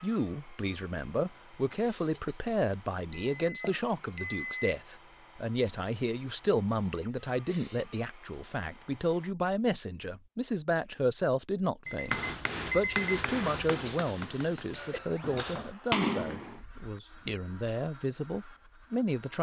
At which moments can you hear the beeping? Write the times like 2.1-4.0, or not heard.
3.1-4.8, 11.8-13.2.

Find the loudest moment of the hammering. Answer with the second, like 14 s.
16 s.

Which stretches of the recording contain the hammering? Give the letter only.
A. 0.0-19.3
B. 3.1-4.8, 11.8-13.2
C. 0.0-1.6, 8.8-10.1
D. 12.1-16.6
D.